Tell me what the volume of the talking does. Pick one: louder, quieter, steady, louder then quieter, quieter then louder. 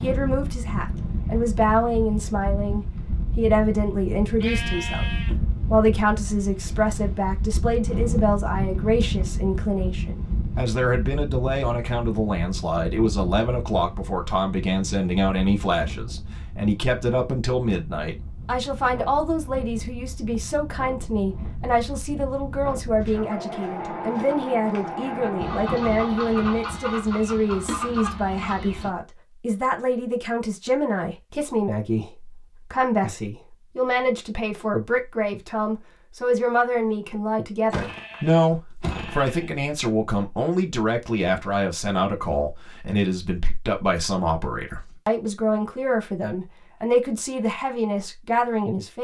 steady.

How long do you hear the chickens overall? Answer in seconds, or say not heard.
6 s.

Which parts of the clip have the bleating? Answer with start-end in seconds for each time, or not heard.
4.4-5.3, 37.7-39.5.